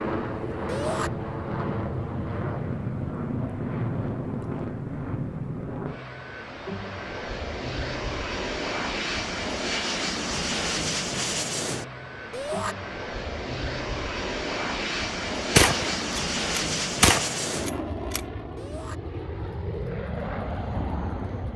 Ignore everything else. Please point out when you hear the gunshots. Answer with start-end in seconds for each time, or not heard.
15.6-18.2.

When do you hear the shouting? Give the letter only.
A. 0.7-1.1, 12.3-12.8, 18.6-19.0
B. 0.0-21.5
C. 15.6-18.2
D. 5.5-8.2
A.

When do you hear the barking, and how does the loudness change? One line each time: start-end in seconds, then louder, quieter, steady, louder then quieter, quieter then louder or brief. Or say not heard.
not heard.